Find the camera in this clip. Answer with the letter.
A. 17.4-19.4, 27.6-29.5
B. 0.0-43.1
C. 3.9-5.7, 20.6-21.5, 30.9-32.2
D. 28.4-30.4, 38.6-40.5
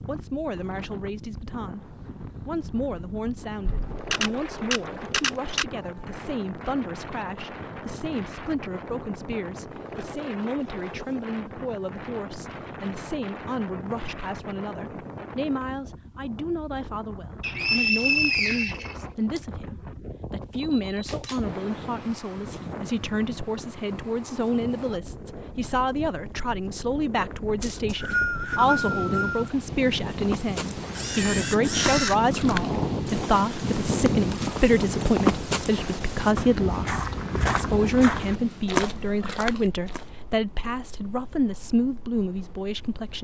C.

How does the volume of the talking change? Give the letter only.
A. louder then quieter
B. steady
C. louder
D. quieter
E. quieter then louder
C.